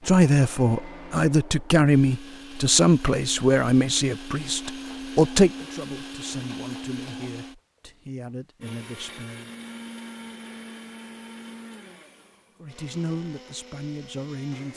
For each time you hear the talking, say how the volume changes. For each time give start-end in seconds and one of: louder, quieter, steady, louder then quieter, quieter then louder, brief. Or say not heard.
0.1-9.5 quieter
12.6-14.7 brief.